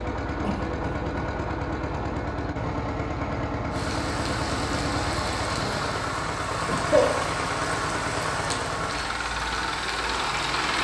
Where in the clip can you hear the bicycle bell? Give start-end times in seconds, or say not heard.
not heard.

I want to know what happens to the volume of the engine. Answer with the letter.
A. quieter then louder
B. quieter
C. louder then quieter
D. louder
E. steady
E.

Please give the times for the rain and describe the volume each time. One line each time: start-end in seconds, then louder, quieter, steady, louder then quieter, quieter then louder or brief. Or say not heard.
3.7-10.7 steady.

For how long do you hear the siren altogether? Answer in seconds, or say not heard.
not heard.